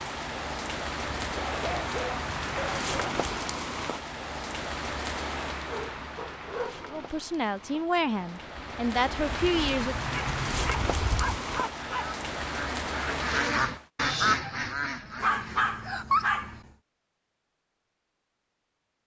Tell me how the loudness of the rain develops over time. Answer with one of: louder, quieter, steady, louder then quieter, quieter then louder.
quieter then louder.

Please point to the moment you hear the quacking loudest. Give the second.
14 s.